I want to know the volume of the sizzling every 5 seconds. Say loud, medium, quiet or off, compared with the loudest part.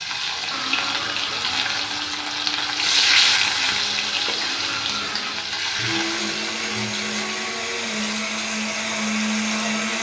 loud, medium.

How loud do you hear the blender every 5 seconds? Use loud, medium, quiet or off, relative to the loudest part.
medium, loud.